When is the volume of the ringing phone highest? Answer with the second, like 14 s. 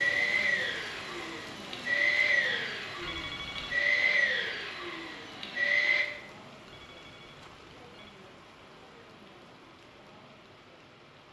3 s.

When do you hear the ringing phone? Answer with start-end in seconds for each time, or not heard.
3.0-3.8, 6.7-8.1.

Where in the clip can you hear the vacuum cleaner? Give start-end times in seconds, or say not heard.
0.0-6.0.